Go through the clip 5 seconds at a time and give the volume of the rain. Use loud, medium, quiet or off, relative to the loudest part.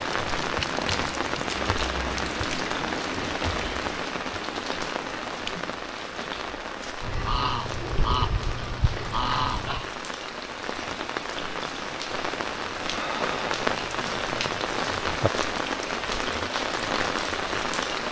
loud, medium, loud, loud.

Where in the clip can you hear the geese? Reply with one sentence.
The geese can be heard from 7.0 to 9.9 s.